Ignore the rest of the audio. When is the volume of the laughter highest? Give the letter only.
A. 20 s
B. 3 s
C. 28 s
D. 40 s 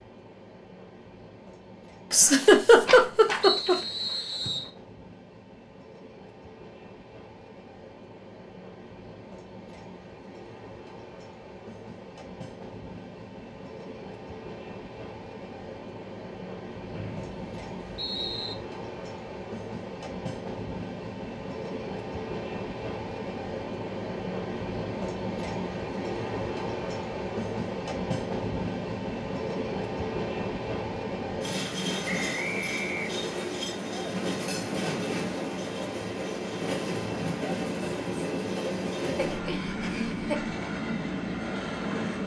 B.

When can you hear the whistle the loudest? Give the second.
4 s.